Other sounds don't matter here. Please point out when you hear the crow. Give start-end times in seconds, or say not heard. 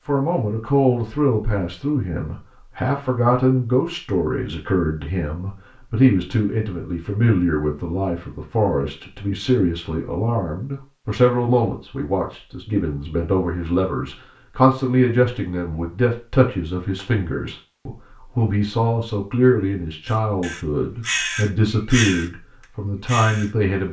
20.1-22.3, 23.1-23.8.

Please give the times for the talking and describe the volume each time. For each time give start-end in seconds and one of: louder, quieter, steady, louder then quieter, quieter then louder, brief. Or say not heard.
0.1-23.8 steady.